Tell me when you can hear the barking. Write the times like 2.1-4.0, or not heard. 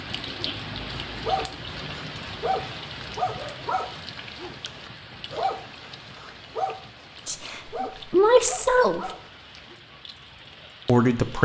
1.1-9.8.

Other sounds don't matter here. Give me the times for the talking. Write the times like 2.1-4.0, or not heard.
7.2-9.1, 10.8-11.4.